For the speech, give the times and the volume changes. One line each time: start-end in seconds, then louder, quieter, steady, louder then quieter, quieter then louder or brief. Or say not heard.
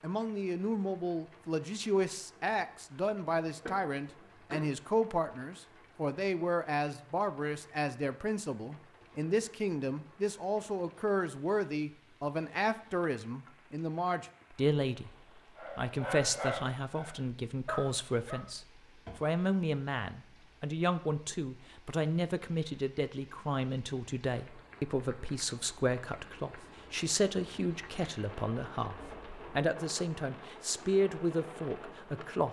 0.0-15.2 steady
15.8-32.4 steady.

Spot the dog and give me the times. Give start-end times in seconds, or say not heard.
15.6-18.4.